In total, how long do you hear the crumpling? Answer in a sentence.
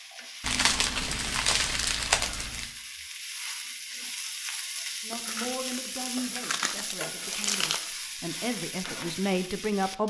The crumpling can be heard for 5 seconds in total.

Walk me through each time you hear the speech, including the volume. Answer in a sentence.
You can hear the speech from 5.0 to 10.0 s, getting quieter then louder.